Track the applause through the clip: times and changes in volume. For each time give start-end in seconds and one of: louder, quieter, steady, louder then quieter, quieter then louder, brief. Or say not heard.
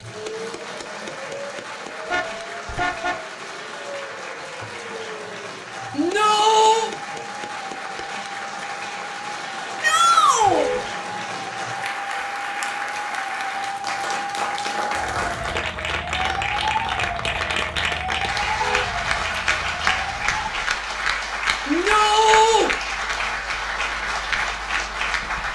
0.0-25.4 louder.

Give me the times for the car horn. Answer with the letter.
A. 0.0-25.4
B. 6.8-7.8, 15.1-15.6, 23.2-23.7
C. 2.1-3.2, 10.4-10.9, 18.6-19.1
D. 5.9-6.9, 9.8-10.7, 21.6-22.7
C.